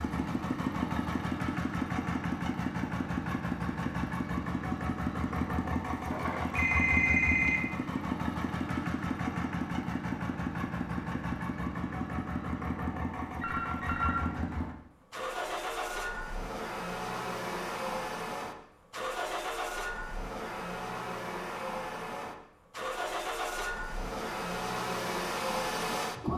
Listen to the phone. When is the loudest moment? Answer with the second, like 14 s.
7 s.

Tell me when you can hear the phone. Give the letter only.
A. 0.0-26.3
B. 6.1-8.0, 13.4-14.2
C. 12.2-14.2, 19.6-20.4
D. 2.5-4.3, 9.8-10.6
B.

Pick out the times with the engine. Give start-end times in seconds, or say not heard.
0.0-26.3.